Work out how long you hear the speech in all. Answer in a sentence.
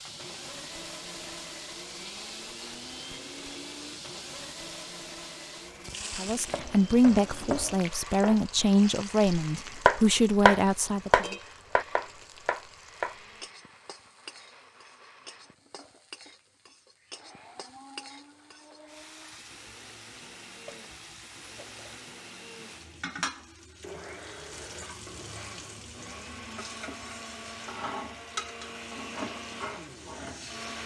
You can hear the speech for 5 seconds altogether.